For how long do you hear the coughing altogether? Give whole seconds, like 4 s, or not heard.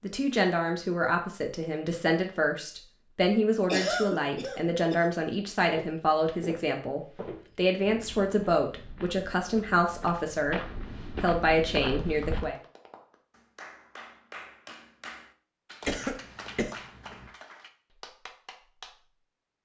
3 s.